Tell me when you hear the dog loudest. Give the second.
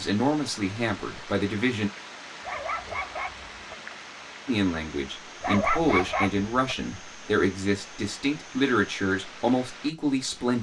6 s.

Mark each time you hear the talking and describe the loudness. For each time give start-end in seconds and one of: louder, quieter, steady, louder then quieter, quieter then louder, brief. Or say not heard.
0.0-1.9 brief
4.5-10.5 steady.